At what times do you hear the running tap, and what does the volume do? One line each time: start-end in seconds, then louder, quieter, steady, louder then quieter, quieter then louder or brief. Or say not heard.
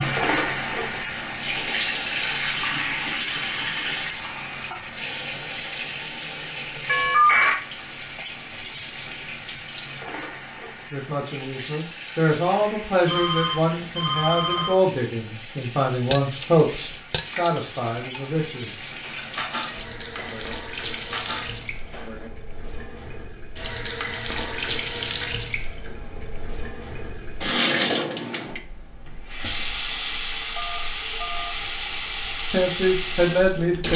0.0-33.9 quieter then louder.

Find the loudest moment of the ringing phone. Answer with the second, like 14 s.
7 s.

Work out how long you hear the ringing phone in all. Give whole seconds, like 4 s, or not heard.
3 s.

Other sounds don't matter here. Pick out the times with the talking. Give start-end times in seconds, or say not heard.
10.9-18.8, 32.5-33.9.